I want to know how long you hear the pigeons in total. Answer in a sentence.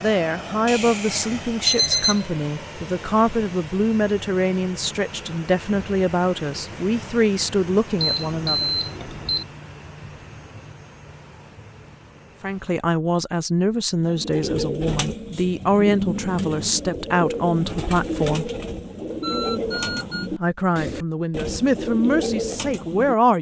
The pigeons can be heard for 9 seconds in total.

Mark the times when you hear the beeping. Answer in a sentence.
You can hear the beeping from 0.7 to 2.2 s, from 8.0 to 9.4 s and from 19.2 to 20.3 s.